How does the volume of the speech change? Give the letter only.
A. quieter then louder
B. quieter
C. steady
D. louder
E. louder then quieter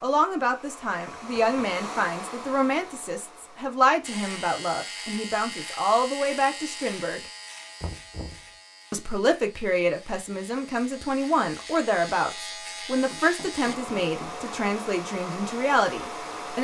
C.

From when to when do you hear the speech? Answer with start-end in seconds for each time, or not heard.
0.0-7.2, 8.9-16.6.